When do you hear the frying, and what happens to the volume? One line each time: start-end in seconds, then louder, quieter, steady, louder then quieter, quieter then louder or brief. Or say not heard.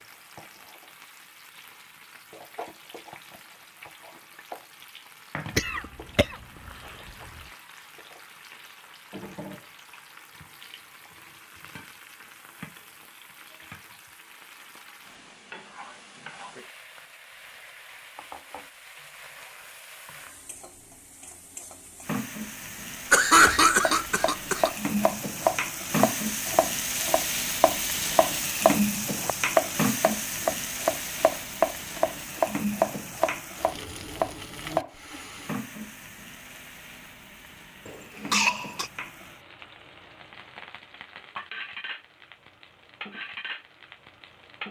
0.0-44.6 louder then quieter.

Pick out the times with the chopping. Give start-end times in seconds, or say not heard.
23.8-34.9.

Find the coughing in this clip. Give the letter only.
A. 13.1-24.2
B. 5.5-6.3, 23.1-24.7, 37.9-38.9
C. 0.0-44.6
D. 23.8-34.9
B.